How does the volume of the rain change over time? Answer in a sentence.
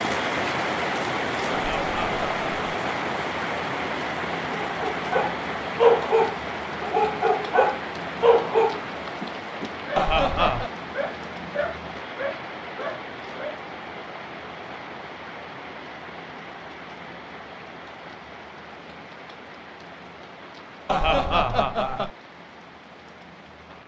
The volume of the rain goes down.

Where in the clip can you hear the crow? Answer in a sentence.
The crow can't be heard in this clip.